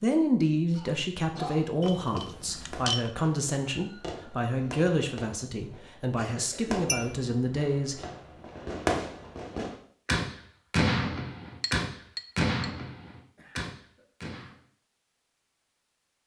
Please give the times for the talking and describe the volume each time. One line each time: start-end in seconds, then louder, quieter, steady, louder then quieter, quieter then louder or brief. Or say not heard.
0.0-8.1 steady.